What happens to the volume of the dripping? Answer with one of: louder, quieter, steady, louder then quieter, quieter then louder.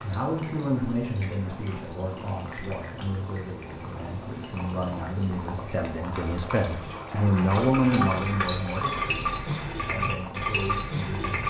louder.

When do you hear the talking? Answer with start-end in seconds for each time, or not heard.
0.0-11.4.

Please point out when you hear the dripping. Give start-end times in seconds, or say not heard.
0.0-11.4.